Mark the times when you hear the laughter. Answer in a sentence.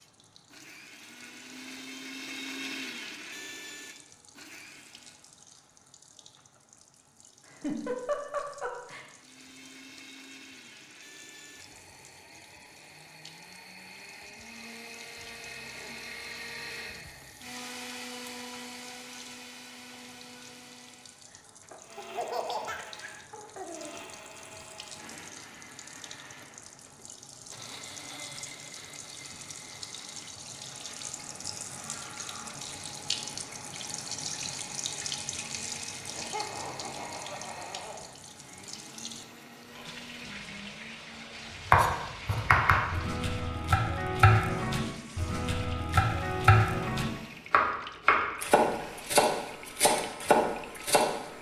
You can hear the laughter from 7.5 to 9.1 s, from 21.9 to 23.9 s and from 36.0 to 38.0 s.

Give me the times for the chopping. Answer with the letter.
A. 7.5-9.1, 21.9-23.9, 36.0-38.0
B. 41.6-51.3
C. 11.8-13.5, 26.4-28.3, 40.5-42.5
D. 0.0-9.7
B.